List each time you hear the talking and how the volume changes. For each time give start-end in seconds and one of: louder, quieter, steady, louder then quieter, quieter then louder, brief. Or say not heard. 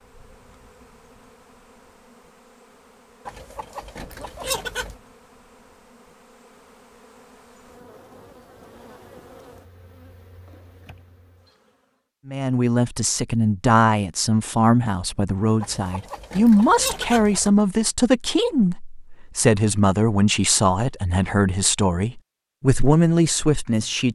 12.2-24.0 steady.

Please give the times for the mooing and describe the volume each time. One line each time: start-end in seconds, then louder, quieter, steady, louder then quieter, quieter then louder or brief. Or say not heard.
not heard.